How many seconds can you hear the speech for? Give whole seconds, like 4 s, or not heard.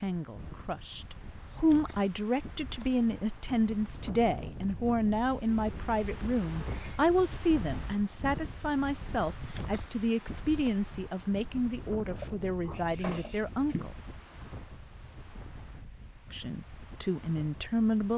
16 s.